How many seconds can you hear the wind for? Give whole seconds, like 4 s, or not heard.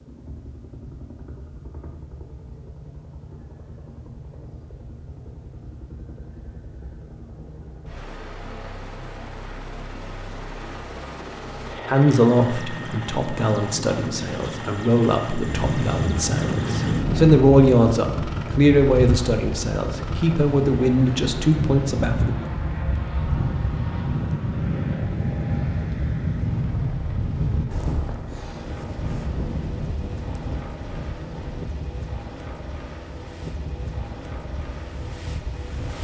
21 s.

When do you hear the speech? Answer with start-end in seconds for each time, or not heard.
11.8-22.4.